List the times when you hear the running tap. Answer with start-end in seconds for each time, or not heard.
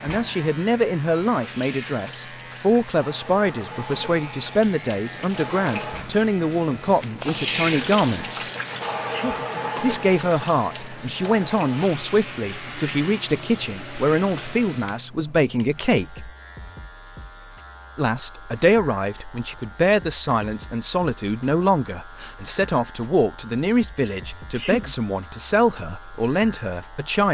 0.0-14.8.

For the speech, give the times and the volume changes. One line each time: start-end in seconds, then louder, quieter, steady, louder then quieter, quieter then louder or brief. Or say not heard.
0.0-8.4 steady
9.8-16.3 steady
17.9-27.2 steady.